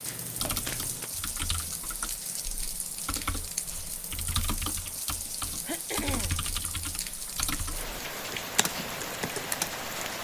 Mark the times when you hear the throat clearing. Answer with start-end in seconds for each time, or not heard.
5.7-6.5.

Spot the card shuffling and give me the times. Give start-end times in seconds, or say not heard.
0.1-1.1.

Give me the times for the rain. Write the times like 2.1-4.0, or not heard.
0.0-10.1.